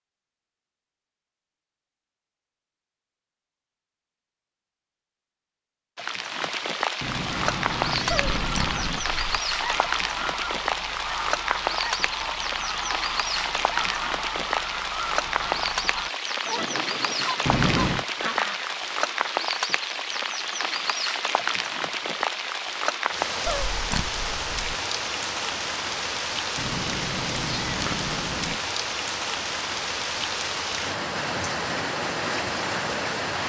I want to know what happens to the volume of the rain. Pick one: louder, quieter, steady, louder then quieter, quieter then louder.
steady.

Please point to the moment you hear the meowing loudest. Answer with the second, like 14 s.
18 s.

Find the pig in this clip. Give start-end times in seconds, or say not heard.
8.1-9.4, 23.4-24.8.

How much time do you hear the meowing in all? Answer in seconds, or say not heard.
5 s.